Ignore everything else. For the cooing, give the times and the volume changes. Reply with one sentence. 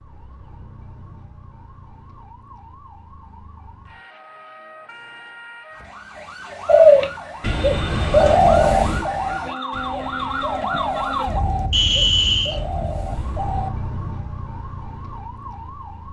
The cooing can be heard from 6.7 to 13.7 s, getting quieter.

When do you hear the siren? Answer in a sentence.
The siren can be heard from 0.0 to 16.0 s.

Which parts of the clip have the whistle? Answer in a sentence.
You can hear the whistle from 11.7 to 12.6 s.